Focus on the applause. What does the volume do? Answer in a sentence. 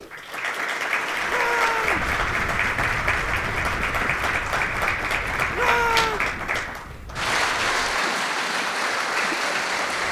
The volume of the applause stays about the same.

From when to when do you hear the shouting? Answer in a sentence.
The shouting can be heard from 1.2 to 2.0 s and from 5.5 to 6.2 s.